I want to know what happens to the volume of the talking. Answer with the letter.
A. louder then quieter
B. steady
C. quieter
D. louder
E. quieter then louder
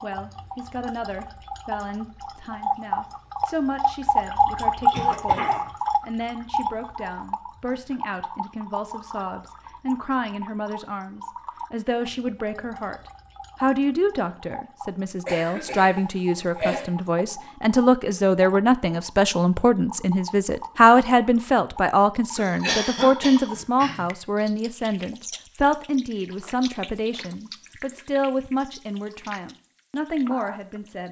A.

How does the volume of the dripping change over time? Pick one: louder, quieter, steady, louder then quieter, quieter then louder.
quieter.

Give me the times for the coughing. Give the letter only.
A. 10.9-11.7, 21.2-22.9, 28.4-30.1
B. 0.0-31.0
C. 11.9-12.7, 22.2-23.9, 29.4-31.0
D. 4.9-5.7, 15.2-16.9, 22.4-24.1
D.